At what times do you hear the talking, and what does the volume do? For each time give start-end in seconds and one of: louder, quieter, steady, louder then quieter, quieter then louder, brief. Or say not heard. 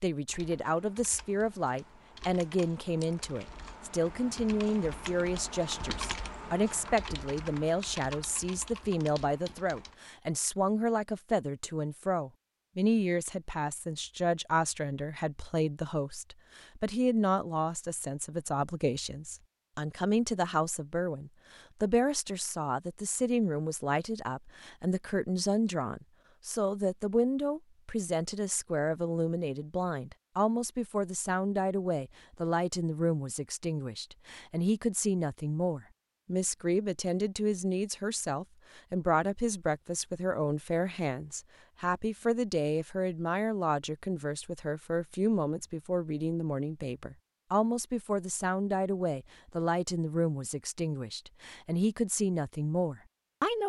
0.0-53.6 steady.